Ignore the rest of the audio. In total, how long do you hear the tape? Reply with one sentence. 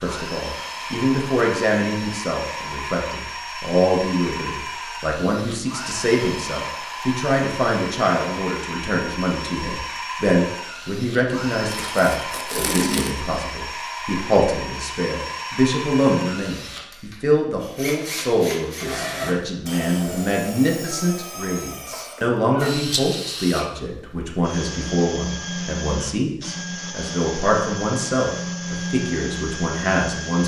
You can hear the tape for 2 seconds altogether.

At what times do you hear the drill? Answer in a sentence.
The drill can be heard from 0.0 to 30.4 s.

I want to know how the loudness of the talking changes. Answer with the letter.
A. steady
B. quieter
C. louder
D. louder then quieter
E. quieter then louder
A.